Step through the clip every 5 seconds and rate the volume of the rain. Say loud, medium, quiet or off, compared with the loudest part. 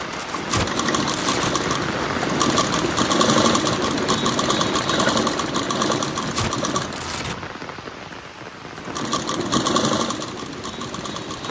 loud, medium, medium.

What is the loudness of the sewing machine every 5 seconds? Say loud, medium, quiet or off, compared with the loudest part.
loud, loud, medium.